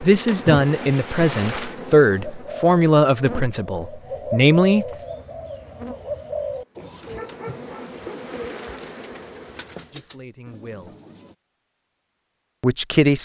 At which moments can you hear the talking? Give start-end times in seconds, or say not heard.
0.0-4.8, 9.9-10.9, 12.6-13.2.